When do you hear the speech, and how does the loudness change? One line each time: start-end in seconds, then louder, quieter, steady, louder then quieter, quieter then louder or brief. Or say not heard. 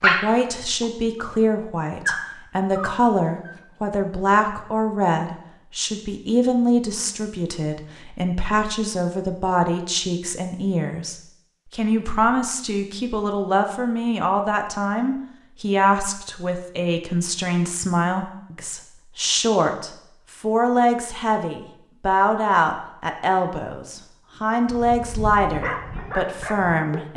0.0-27.1 steady.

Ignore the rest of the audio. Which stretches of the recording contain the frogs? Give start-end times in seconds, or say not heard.
not heard.